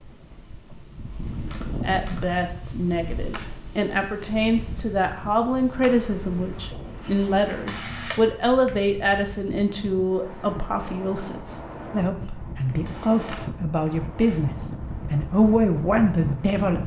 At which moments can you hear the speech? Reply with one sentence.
The speech can be heard from 1.8 to 16.8 s.